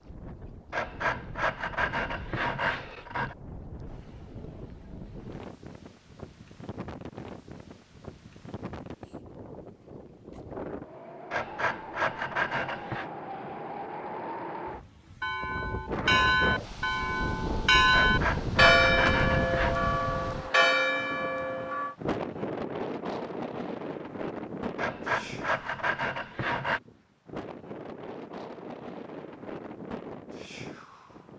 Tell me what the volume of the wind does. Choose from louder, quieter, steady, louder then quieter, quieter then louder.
louder then quieter.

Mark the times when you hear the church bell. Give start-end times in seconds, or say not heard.
15.2-21.9.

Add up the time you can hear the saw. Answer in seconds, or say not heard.
8 s.